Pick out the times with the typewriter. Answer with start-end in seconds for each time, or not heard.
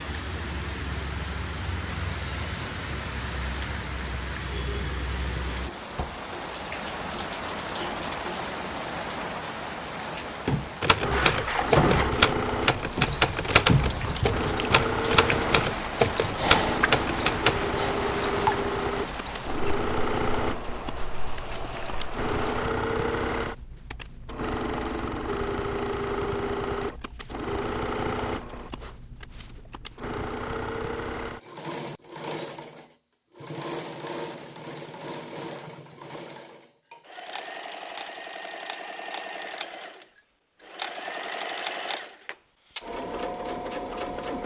10.8-17.7.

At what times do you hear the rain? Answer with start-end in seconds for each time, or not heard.
0.0-22.7.